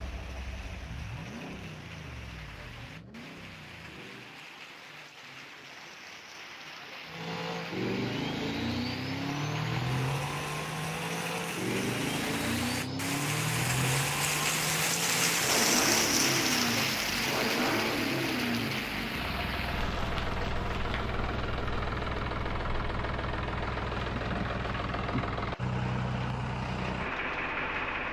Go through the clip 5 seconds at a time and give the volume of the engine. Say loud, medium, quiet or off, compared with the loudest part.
quiet, loud, loud, loud, loud, loud.